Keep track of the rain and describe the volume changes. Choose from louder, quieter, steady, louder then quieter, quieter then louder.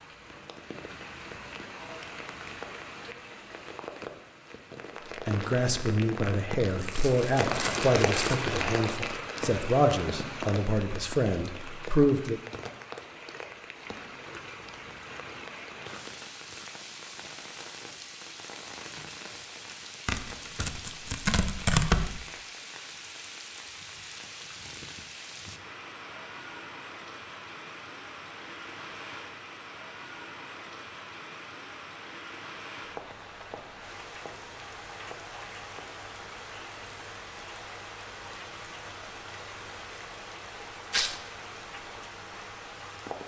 quieter.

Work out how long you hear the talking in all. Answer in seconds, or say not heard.
7 s.